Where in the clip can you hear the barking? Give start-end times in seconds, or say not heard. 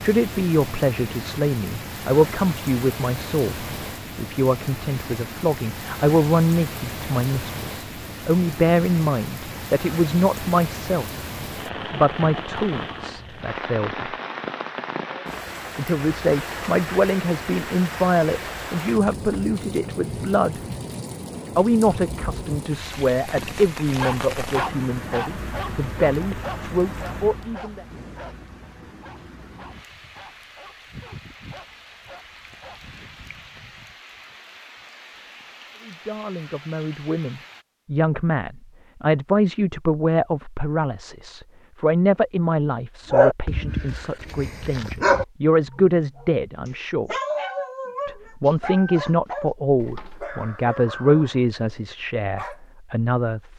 23.4-33.1, 43.1-46.2, 47.0-52.6.